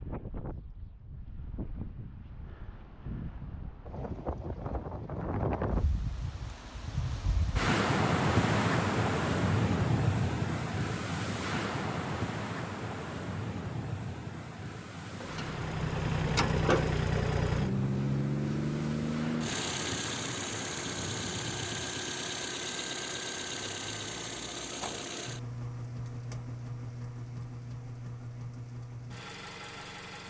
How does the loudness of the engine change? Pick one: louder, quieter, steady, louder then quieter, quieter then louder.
quieter.